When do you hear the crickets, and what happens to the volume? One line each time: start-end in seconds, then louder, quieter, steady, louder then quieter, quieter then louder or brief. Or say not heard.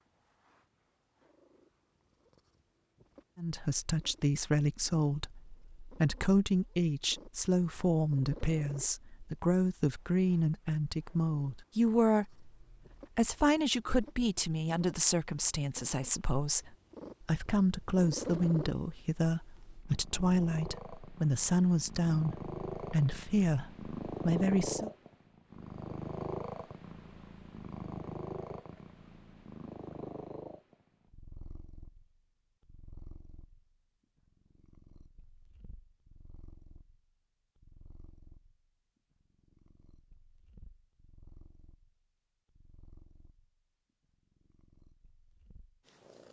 not heard.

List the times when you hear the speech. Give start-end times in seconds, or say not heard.
3.4-24.9.